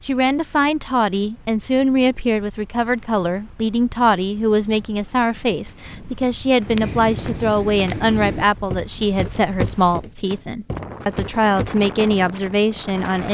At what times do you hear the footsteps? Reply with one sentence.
The footsteps can be heard from 6.6 to 11.8 s.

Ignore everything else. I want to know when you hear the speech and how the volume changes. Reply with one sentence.
The speech can be heard from 0.0 to 13.2 s, at a steady volume.